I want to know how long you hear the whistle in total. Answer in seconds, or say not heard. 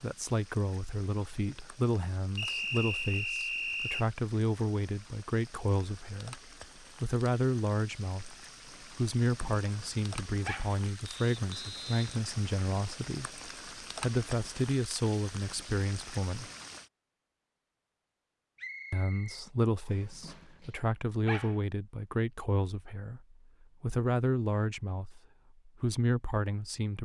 5 s.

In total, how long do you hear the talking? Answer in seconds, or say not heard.
24 s.